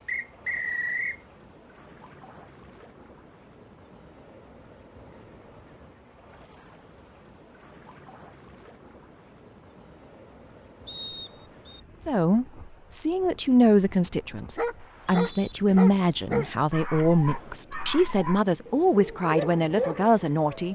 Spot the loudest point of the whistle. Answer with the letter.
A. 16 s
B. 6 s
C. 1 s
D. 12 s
C.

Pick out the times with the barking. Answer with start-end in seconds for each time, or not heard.
14.3-20.7.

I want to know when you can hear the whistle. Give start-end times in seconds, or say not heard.
0.1-1.2, 10.8-11.8, 14.8-15.6.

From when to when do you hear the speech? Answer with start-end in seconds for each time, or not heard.
12.0-20.7.